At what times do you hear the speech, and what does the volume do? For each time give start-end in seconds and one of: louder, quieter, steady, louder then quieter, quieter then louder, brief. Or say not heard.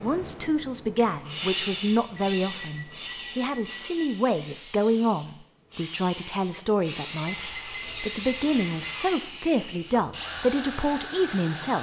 0.0-11.7 steady.